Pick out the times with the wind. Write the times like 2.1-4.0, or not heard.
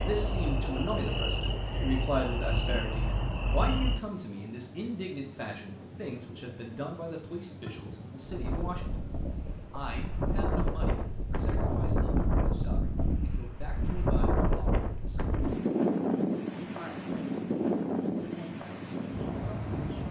8.2-20.0.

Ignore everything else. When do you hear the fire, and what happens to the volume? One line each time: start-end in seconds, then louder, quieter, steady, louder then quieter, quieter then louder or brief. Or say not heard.
not heard.